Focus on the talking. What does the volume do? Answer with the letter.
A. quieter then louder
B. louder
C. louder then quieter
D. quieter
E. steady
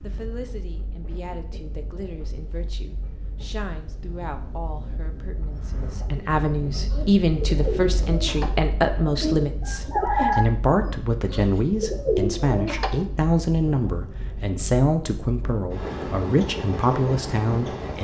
B.